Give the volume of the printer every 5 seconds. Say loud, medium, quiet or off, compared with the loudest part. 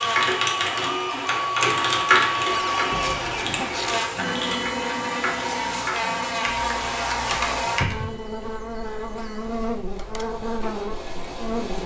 loud, medium, medium.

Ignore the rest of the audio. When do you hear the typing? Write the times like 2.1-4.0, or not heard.
0.0-8.1.